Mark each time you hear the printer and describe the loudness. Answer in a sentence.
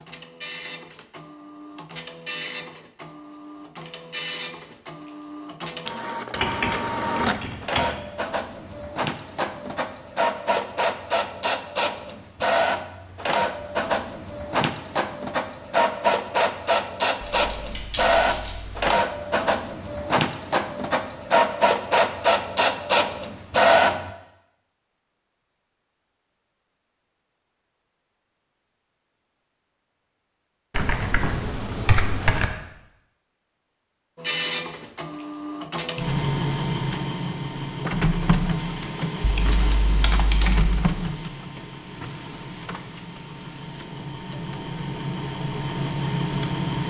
You can hear the printer from 0.0 to 24.1 s, getting louder; and from 34.1 to 46.8 s, getting quieter then louder.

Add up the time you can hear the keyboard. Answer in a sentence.
You can hear the keyboard for 7 seconds altogether.